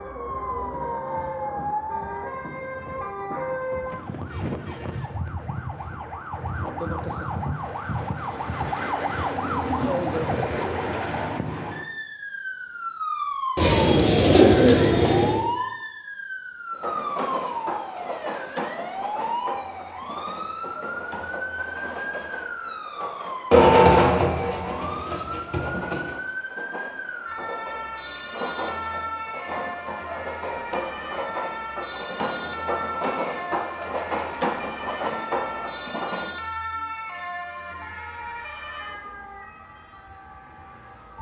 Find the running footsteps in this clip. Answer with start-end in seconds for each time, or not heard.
not heard.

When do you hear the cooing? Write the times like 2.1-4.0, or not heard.
13.6-15.4, 23.5-26.1.